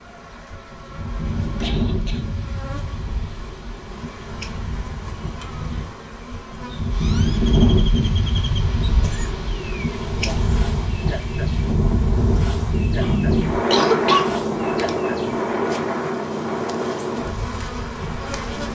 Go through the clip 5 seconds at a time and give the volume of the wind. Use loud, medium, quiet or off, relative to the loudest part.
medium, loud, loud, loud.